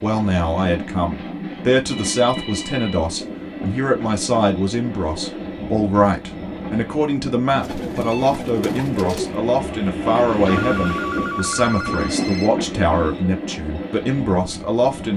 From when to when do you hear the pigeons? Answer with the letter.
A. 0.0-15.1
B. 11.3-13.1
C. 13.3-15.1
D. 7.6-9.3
D.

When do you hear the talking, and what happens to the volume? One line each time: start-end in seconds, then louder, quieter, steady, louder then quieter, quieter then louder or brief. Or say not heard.
0.0-15.1 steady.